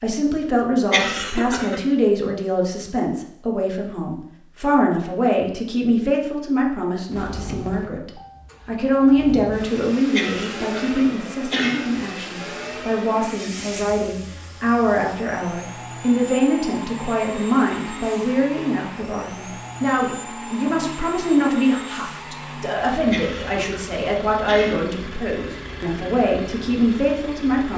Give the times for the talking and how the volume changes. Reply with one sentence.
You can hear the talking from 0.0 to 27.7 s, at a steady volume.